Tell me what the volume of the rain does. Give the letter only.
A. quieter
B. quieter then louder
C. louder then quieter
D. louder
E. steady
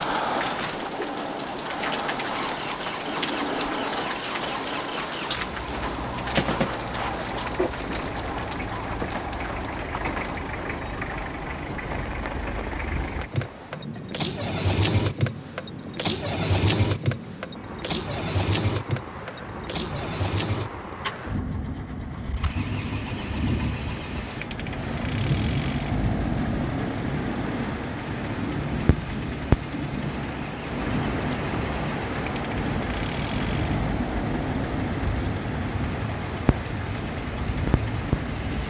B.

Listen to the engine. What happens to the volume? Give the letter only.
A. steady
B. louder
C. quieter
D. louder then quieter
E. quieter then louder
D.